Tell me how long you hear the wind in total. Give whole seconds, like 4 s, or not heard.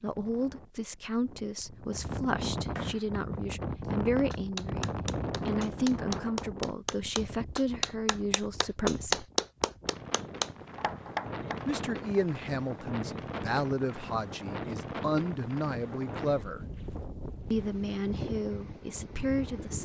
20 s.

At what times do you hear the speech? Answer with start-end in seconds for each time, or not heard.
0.0-9.2, 11.7-16.6, 17.5-19.8.